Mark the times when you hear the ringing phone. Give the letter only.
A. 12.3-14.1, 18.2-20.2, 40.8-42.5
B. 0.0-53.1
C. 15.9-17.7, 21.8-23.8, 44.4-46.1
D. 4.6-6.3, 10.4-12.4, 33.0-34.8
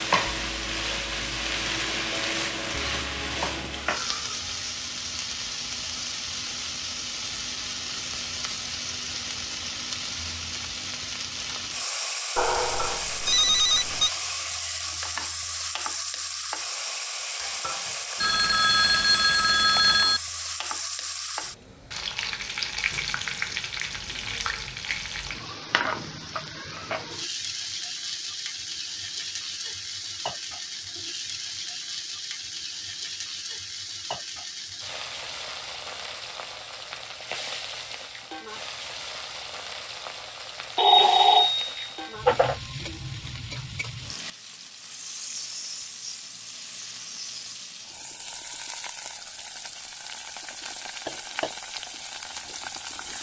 A.